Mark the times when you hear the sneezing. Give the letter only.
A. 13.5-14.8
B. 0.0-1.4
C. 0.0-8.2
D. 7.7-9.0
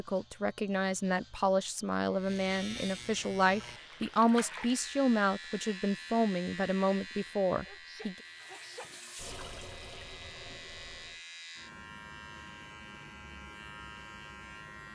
D.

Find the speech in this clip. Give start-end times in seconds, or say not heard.
0.0-8.2.